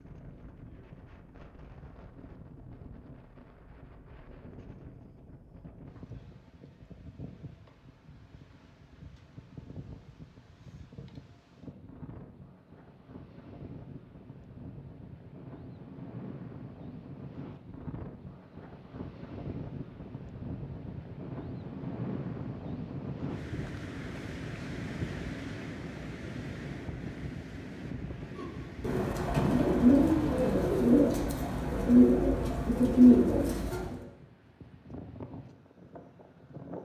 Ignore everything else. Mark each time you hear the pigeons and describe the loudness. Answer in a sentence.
The pigeons can be heard from 28.4 to 34.0 s, getting louder.